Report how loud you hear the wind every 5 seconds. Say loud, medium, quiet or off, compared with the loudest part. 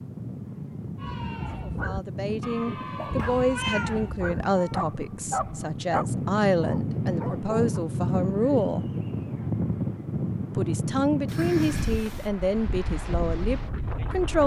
medium, loud, loud.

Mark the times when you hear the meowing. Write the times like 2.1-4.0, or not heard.
3.0-4.8, 11.2-12.3.